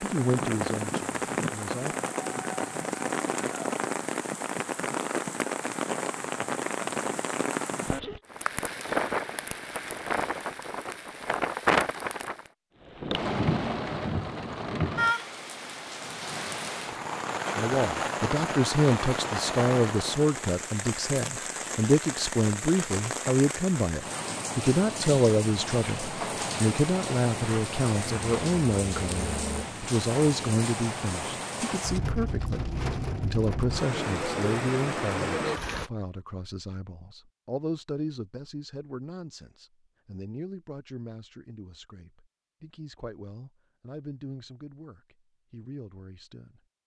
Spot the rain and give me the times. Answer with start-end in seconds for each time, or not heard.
0.0-35.9.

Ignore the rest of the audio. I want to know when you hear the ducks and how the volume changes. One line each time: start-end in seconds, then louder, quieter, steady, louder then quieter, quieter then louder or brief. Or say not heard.
not heard.